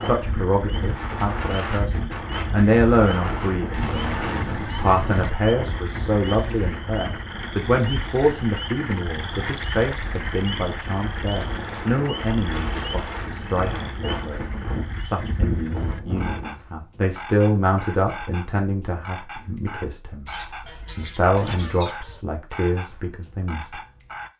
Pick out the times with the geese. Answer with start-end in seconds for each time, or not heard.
3.7-5.3, 20.2-22.2.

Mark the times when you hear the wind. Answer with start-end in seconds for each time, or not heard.
0.0-16.6.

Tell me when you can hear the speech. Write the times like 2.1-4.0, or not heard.
0.0-20.3, 20.9-23.8.